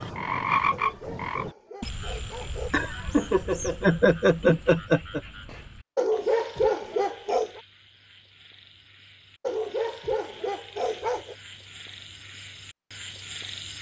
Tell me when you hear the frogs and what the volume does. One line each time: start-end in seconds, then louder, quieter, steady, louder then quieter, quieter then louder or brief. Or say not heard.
0.0-13.7 quieter then louder.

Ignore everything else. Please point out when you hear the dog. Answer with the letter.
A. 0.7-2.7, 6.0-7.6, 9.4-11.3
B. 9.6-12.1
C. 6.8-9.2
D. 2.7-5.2
A.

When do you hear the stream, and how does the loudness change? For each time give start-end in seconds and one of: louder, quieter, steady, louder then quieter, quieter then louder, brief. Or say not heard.
not heard.